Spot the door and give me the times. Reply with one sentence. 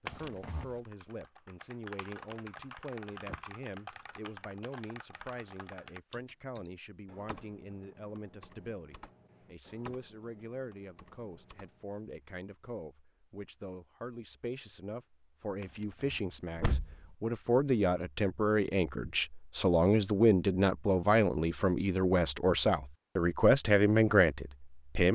The door can be heard from 0.1 to 0.7 s and from 15.6 to 17.1 s.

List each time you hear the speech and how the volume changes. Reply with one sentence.
You can hear the speech from 0.0 to 25.1 s, getting louder.